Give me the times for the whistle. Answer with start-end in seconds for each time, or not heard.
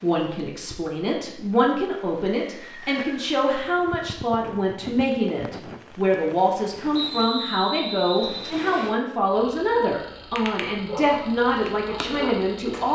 2.5-3.3, 6.9-8.9.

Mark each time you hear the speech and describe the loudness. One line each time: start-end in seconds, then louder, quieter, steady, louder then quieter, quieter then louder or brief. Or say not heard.
0.0-12.9 steady.